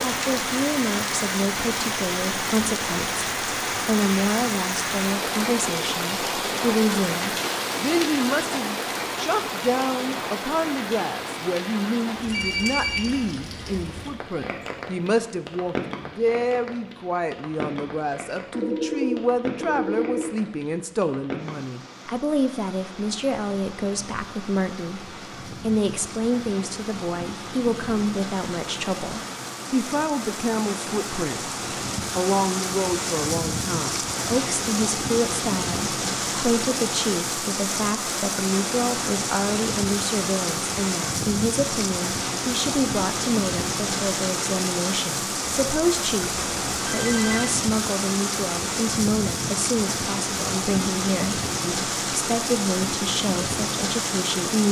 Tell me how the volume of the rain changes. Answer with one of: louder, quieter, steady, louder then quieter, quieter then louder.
quieter then louder.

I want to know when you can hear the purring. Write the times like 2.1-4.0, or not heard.
not heard.